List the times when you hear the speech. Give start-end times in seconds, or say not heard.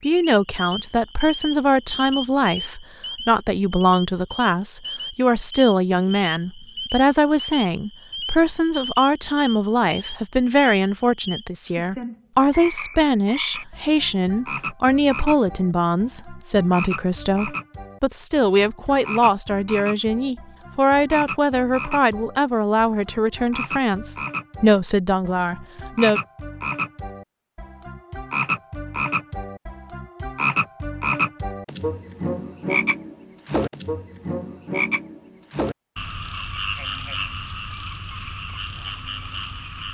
0.0-26.2.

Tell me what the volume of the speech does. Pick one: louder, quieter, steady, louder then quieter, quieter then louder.
steady.